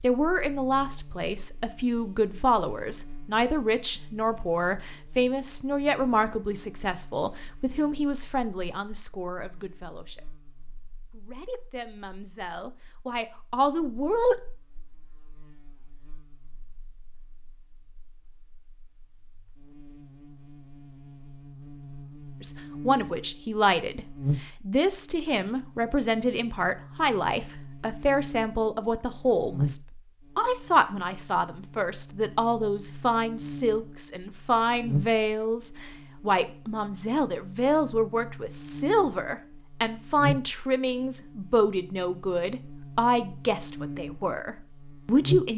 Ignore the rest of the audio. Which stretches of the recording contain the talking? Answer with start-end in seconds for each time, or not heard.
0.0-10.3, 11.1-14.3, 22.4-45.5.